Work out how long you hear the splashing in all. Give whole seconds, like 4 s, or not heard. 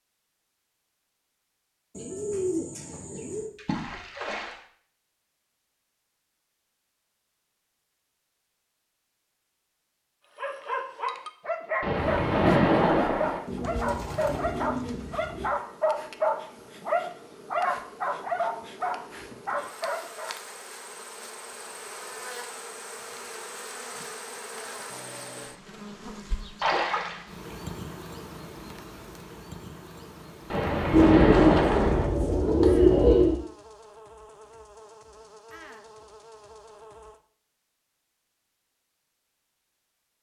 5 s.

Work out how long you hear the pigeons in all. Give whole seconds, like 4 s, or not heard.
6 s.